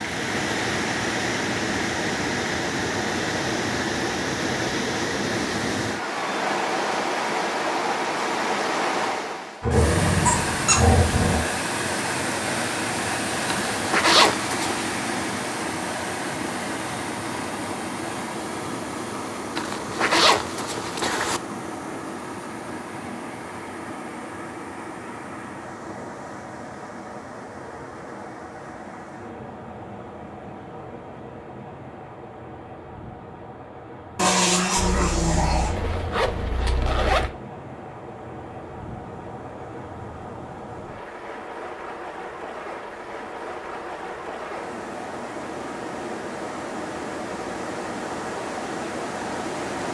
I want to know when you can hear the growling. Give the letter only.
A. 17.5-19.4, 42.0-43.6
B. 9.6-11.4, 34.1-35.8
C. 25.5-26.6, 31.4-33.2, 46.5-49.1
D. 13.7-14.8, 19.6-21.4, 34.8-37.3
B.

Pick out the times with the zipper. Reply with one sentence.
The zipper can be heard from 13.7 to 14.8 s, from 19.6 to 21.4 s and from 34.8 to 37.3 s.